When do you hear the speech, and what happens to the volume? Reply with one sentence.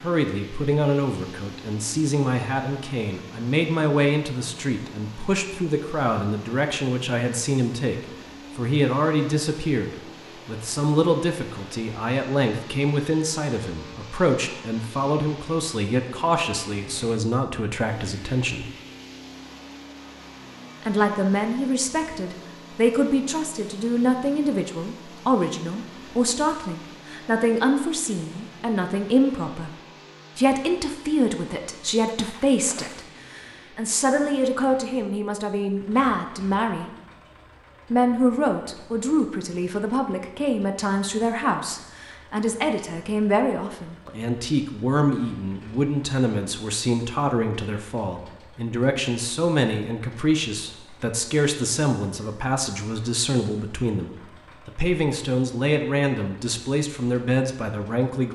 The speech can be heard from 0.0 to 18.7 s, at a steady volume; from 20.8 to 29.8 s, at a steady volume; from 30.4 to 36.9 s, at a steady volume; and from 37.9 to 58.2 s, at a steady volume.